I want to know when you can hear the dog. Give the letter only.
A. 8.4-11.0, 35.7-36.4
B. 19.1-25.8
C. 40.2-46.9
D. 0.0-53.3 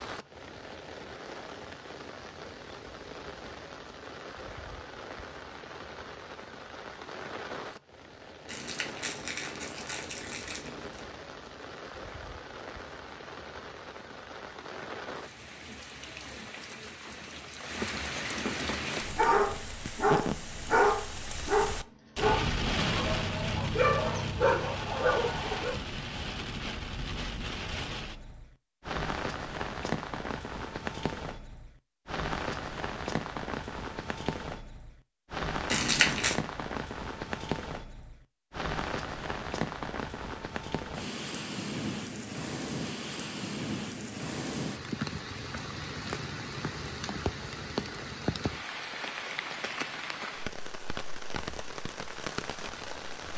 B.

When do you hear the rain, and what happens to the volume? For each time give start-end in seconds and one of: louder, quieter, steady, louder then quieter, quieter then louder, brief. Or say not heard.
0.0-53.3 louder.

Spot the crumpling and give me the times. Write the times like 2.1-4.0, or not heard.
8.4-11.0, 35.7-36.4.